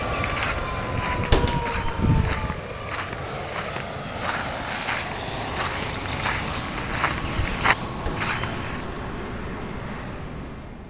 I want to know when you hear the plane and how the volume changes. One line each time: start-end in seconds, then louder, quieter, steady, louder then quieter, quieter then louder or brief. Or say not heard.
0.0-10.8 steady.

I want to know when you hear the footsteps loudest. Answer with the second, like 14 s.
8 s.